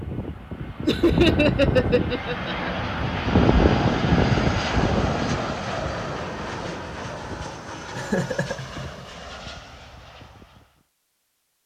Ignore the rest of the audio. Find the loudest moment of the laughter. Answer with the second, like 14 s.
1 s.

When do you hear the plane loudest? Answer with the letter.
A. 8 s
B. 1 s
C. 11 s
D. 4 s
D.